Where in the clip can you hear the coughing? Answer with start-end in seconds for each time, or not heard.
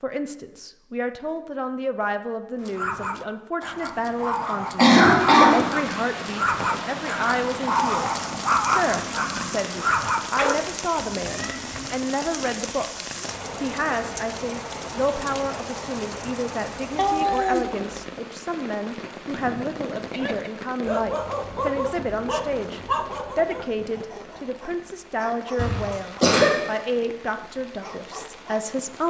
4.8-5.6, 25.6-26.5.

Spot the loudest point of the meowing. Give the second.
17 s.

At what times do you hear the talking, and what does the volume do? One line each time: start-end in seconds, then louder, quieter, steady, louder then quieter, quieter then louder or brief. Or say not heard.
0.0-12.8 steady
13.6-29.0 steady.